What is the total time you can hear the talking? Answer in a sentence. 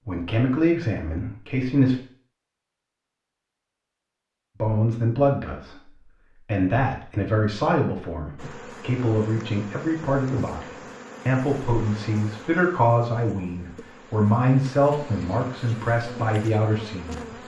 The talking can be heard for 15 seconds in total.